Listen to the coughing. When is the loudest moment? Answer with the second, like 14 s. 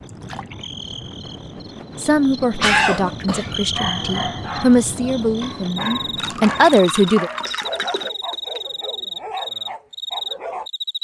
3 s.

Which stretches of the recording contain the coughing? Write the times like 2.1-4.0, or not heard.
2.5-3.5, 7.9-8.6.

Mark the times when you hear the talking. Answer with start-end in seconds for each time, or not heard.
1.9-7.3.